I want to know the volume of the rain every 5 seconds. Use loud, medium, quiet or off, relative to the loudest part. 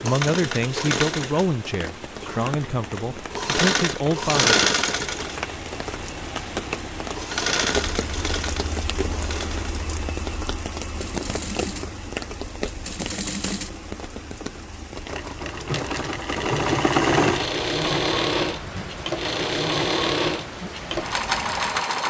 medium, loud, loud, medium, medium.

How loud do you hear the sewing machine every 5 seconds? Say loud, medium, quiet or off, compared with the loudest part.
loud, medium, medium, loud, loud.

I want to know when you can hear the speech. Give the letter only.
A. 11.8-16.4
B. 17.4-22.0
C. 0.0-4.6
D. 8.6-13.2
C.